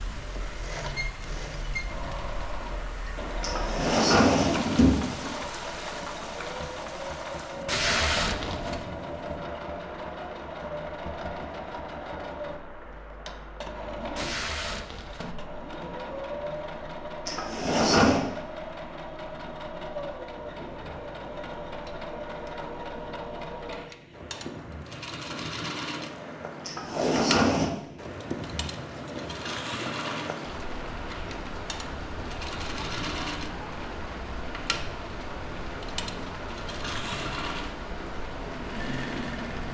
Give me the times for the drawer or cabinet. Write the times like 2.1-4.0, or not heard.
3.4-5.3, 17.2-18.2, 26.6-27.7.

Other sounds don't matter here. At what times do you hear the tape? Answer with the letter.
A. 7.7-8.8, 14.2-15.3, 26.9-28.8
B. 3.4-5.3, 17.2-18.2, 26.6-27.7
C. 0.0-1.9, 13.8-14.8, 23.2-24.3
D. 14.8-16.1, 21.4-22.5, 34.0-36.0
A.